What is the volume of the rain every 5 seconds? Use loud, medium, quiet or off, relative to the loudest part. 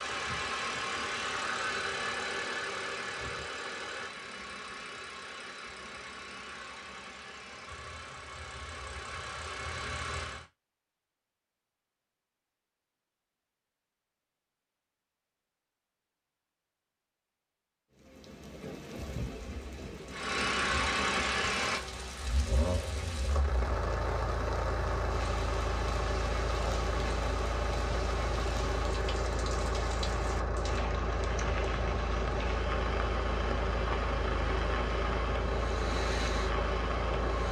off, off, off, loud, loud, loud, loud, loud.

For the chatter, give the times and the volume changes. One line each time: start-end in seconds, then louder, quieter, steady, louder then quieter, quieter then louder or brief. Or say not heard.
not heard.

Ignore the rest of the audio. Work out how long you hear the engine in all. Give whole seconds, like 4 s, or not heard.
28 s.